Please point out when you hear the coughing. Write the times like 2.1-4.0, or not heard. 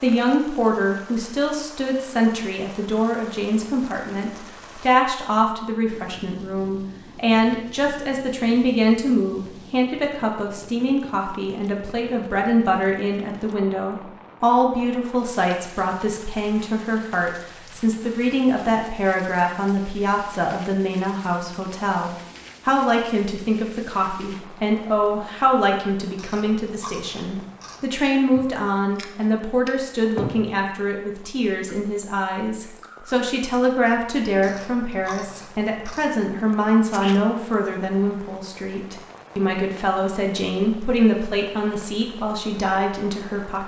not heard.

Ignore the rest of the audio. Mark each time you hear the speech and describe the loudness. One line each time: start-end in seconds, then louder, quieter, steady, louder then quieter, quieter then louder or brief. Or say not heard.
0.0-43.6 steady.